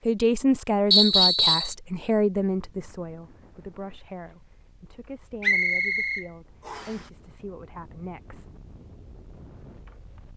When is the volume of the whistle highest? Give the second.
1 s.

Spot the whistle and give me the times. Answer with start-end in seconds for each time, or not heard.
0.9-1.8, 5.4-7.0.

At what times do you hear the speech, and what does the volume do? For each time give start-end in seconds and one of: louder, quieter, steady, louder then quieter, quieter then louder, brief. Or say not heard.
0.1-8.5 quieter.